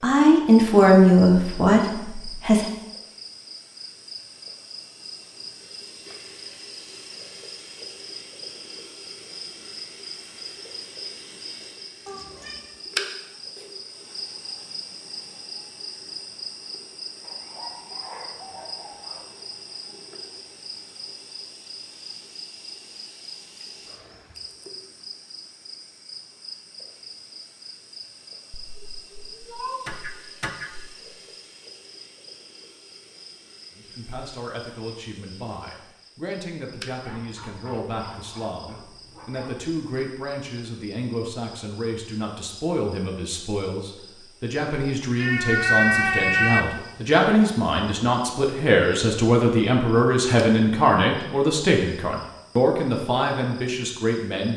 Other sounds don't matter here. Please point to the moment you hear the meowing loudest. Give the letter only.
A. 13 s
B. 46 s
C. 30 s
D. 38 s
B.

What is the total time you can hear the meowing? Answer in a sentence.
The meowing can be heard for 5 seconds in total.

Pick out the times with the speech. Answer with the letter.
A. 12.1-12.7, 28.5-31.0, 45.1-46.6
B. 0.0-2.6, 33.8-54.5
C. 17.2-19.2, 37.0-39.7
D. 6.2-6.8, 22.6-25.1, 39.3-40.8
B.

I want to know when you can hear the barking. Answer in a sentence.
The barking can be heard from 17.2 to 19.2 s and from 37.0 to 39.7 s.